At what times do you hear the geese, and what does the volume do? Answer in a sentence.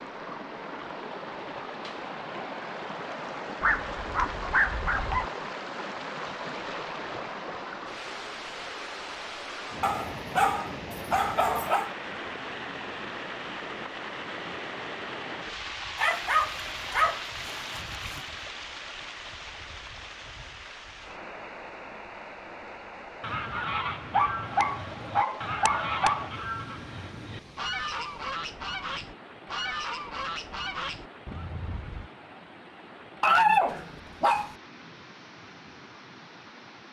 You can hear the geese from 23.2 to 32.1 s, at a steady volume.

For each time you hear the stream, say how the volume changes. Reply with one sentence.
The stream can be heard from 0.0 to 36.8 s, getting quieter.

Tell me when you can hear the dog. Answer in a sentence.
You can hear the dog from 3.6 to 5.3 s, from 9.8 to 11.9 s, from 15.9 to 18.2 s, from 24.1 to 26.3 s and from 33.2 to 34.5 s.